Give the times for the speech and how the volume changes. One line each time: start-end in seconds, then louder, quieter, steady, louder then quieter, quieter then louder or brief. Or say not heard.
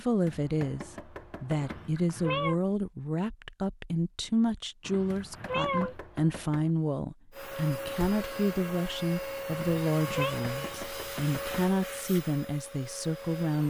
0.0-13.6 steady.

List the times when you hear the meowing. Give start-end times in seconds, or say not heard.
1.6-2.5, 4.8-6.0, 9.5-10.3.